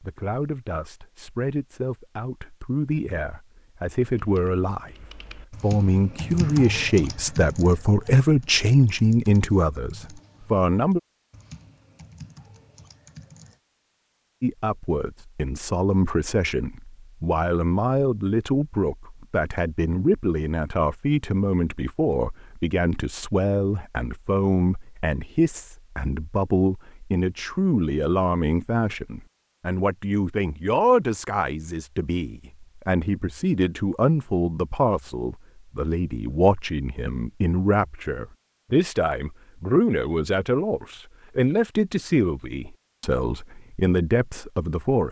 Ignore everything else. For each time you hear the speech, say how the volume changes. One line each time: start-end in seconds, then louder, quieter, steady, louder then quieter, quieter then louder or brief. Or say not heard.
0.0-11.0 louder
14.4-45.0 steady.